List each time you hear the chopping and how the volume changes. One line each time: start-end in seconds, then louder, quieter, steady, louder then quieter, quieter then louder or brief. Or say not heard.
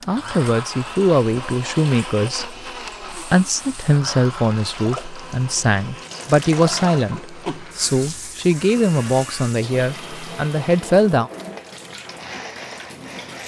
not heard.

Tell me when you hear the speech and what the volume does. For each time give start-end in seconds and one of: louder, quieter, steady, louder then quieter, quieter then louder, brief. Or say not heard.
0.1-11.3 steady.